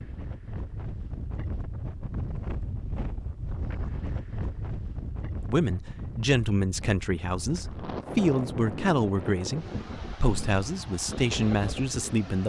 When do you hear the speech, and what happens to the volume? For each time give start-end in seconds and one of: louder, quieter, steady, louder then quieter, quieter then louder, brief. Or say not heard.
5.4-12.4 steady.